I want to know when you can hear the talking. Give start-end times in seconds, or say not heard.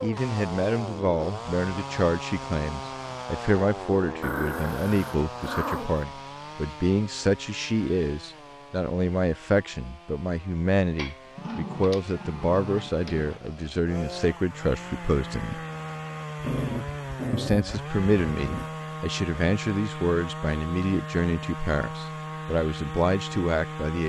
0.0-15.6, 17.3-24.0.